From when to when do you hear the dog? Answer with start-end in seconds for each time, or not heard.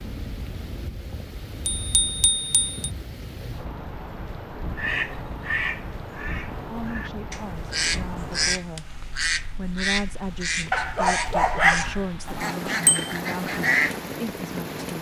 10.7-12.1.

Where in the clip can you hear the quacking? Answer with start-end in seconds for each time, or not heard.
4.8-14.2.